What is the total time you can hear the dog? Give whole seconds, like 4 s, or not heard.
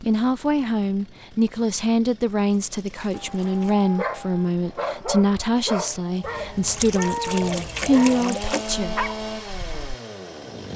8 s.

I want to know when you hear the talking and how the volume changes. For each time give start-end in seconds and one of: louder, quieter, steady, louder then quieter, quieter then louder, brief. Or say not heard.
0.0-8.9 steady.